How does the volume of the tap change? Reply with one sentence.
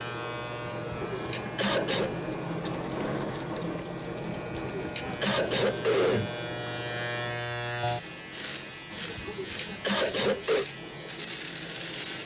The volume of the tap goes down.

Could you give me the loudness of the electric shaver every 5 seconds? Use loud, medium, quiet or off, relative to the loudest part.
medium, loud, loud.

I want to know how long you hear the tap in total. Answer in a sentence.
The tap can be heard for 12 seconds in total.